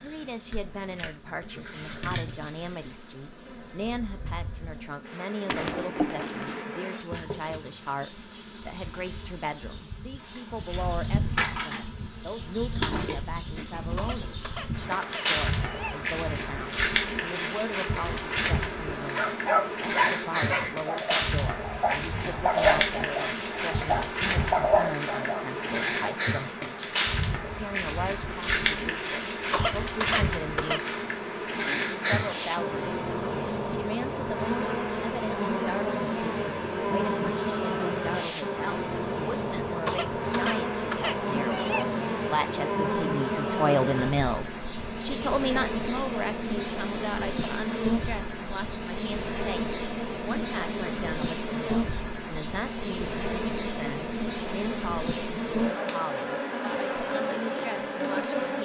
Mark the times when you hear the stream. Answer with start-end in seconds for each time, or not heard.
not heard.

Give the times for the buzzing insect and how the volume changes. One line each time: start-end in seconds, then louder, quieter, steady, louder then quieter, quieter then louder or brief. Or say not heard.
0.0-58.6 louder.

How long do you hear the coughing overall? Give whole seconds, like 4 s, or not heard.
5 s.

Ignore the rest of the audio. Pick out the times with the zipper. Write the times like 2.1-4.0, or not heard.
5.5-6.7.